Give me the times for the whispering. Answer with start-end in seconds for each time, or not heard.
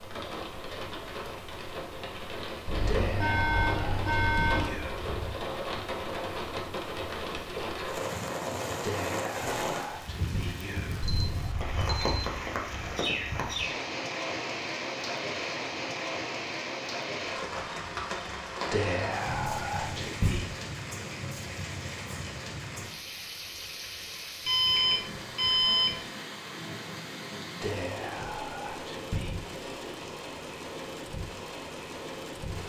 2.9-5.5, 8.8-11.7, 18.7-20.4, 27.6-29.4.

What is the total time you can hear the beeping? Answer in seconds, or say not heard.
5 s.